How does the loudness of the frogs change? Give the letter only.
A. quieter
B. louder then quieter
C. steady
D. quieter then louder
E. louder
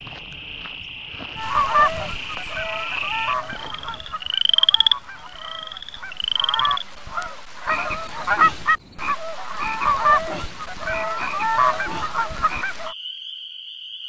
B.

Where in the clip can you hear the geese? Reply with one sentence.
You can hear the geese from 1.4 to 12.9 s.